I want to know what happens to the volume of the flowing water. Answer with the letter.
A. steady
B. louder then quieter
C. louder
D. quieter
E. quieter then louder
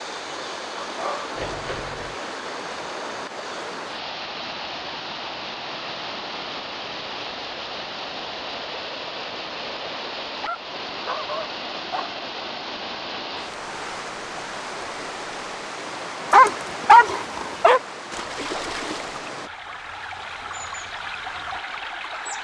A.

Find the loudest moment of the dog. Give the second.
17 s.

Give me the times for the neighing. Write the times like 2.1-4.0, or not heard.
1.4-2.1.